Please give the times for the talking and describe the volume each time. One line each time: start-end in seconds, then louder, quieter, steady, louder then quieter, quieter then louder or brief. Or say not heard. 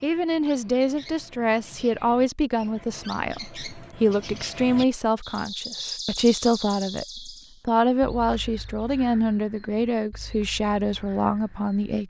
0.0-12.0 steady.